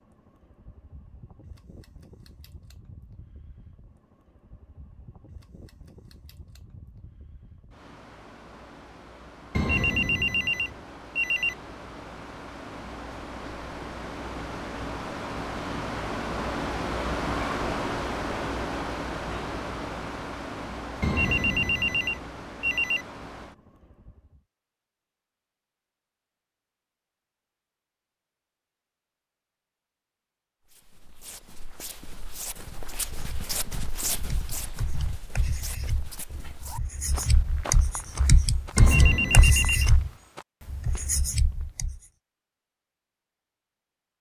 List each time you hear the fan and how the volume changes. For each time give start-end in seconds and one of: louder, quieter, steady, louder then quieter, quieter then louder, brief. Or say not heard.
0.0-24.4 louder then quieter.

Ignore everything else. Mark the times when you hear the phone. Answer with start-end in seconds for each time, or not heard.
9.5-11.6, 21.0-23.1, 38.8-39.9.